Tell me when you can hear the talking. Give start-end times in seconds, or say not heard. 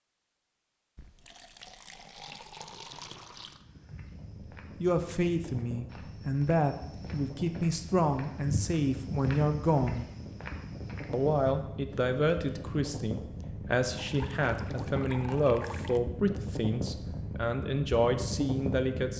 4.8-10.1, 11.1-19.1.